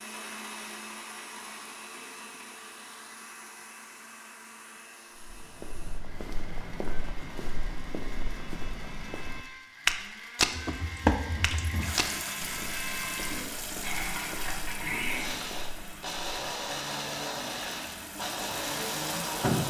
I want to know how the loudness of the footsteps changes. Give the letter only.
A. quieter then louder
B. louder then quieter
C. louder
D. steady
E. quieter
B.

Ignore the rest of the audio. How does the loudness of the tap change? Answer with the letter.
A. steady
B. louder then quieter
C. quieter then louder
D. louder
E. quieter
C.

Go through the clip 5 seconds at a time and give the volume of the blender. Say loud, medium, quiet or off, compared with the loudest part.
medium, quiet, loud, loud.